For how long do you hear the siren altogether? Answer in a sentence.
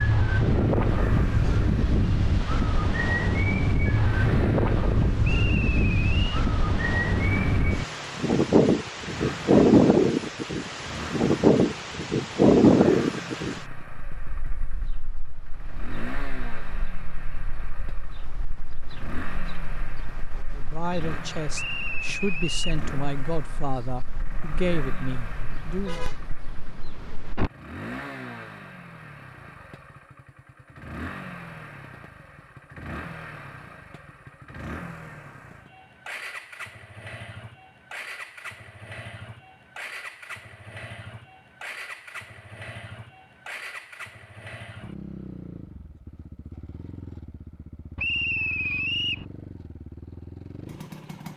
The siren can't be heard in this clip.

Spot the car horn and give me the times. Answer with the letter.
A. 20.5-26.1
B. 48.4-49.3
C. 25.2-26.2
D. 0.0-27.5
C.